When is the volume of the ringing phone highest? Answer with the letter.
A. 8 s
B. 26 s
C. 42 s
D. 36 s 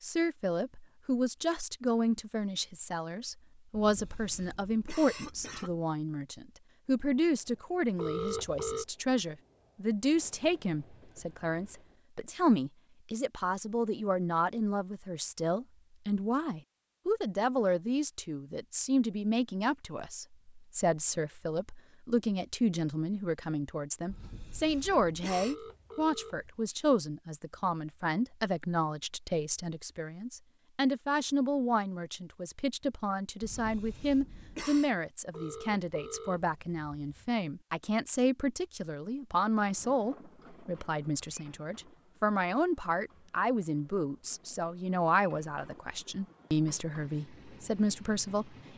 A.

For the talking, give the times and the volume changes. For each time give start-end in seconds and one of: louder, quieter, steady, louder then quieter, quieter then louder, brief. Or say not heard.
0.0-48.5 steady.